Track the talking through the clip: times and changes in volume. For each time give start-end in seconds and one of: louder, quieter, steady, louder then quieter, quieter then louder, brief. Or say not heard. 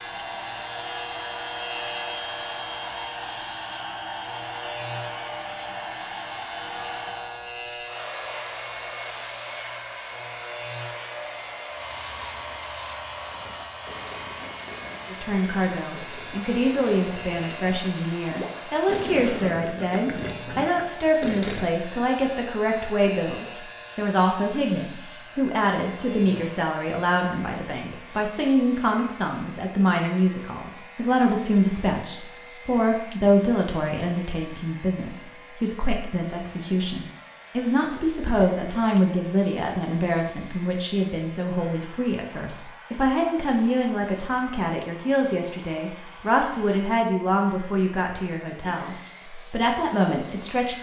15.1-50.7 steady.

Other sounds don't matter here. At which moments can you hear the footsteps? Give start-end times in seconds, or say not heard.
not heard.